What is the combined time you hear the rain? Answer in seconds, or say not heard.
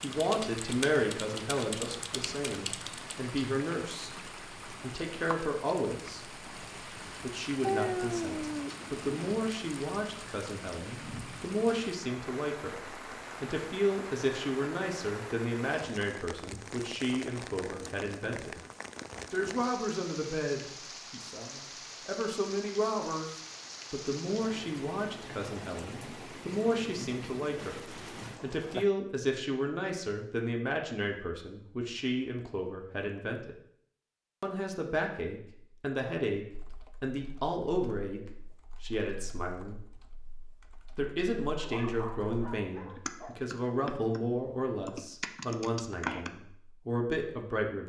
29 s.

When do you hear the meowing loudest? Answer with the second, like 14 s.
8 s.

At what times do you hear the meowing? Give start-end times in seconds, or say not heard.
7.6-9.3.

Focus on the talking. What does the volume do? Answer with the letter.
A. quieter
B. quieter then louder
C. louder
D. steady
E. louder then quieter
D.